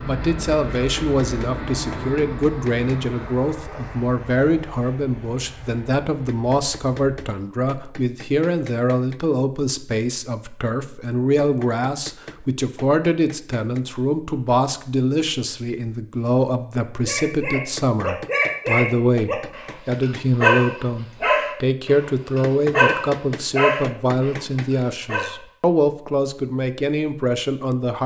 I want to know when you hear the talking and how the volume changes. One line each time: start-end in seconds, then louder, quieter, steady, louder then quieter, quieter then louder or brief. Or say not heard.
0.0-28.0 steady.